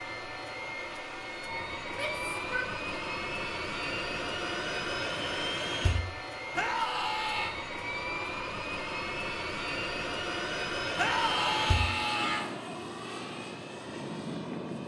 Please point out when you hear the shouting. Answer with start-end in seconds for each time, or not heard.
1.9-2.8, 6.5-7.5, 10.9-12.5.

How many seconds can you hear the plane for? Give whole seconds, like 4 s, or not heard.
15 s.